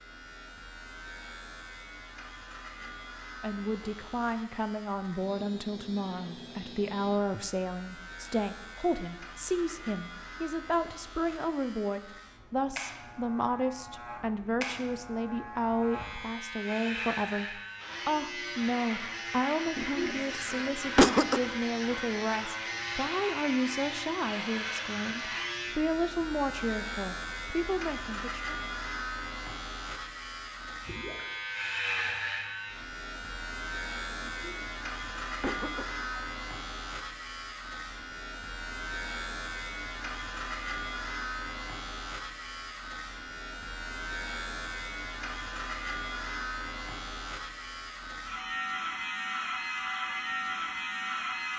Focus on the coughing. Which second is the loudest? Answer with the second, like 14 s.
21 s.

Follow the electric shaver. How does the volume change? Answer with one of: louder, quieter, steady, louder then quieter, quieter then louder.
louder.